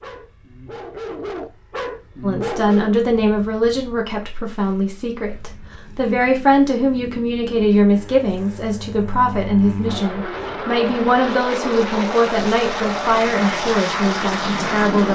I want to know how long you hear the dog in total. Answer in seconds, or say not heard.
3 s.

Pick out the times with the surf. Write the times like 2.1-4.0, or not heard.
not heard.